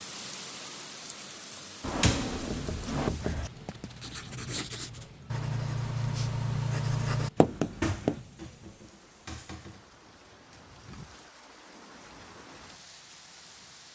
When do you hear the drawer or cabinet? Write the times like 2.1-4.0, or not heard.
1.8-3.1, 7.3-9.8.